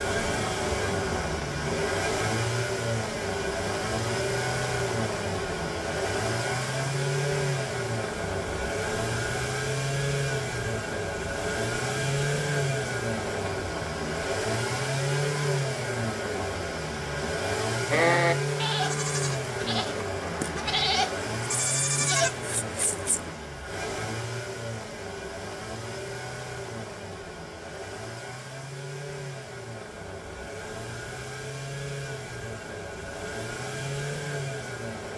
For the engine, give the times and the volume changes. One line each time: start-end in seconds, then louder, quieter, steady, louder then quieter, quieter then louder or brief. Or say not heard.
0.0-35.1 quieter.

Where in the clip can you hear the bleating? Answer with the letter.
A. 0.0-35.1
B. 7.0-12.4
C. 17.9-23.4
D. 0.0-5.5
C.